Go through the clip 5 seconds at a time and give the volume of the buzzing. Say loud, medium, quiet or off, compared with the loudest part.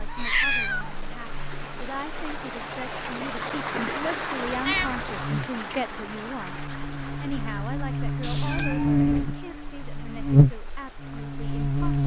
quiet, medium, loud.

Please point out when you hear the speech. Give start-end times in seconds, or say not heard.
0.0-12.0.